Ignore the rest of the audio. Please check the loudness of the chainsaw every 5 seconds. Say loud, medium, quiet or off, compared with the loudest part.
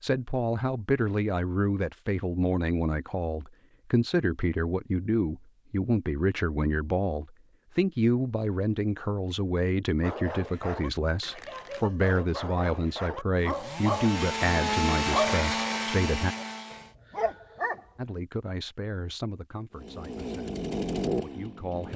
off, off, loud, loud, loud.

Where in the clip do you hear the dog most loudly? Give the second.
15 s.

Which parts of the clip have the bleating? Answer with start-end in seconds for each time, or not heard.
not heard.